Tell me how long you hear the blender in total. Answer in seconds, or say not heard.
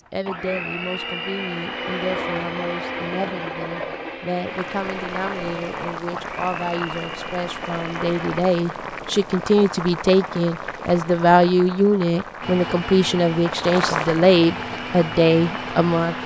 12 s.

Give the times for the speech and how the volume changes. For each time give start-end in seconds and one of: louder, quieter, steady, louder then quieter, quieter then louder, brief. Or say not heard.
0.1-16.1 louder.